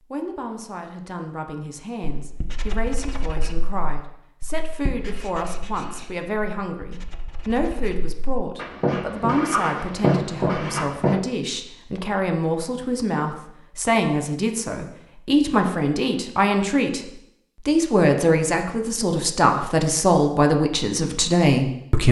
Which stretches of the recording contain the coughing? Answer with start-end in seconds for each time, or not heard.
not heard.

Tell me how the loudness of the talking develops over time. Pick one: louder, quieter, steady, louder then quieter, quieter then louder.
louder.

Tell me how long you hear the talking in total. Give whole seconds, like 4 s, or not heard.
21 s.